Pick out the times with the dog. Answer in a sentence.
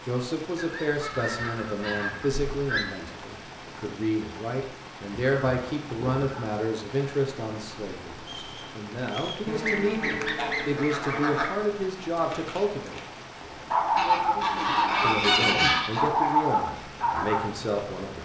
The dog can be heard from 12.2 to 17.4 s.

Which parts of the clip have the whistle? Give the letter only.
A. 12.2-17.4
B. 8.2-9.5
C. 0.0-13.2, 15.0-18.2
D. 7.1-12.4
B.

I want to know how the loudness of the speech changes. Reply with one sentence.
The volume of the speech stays about the same.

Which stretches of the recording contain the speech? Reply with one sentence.
You can hear the speech from 0.0 to 13.2 s and from 15.0 to 18.2 s.